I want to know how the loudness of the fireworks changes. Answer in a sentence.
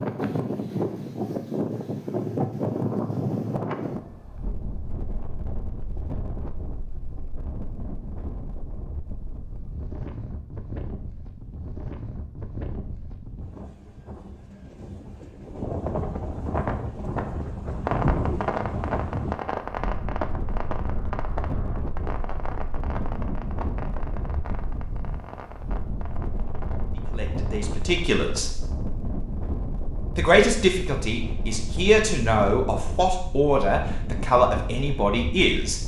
The volume of the fireworks goes down.